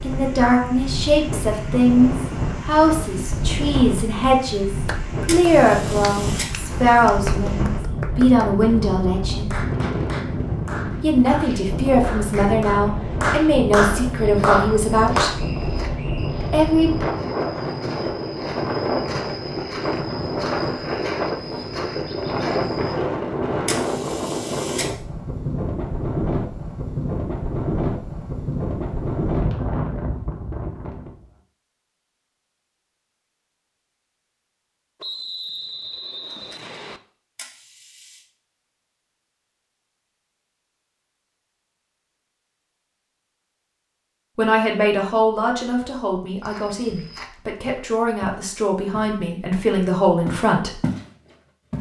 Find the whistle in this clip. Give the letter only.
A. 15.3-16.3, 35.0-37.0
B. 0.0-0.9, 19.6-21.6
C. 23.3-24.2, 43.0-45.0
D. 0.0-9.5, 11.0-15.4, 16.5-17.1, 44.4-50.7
A.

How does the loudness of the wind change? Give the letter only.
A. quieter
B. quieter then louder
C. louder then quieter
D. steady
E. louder
D.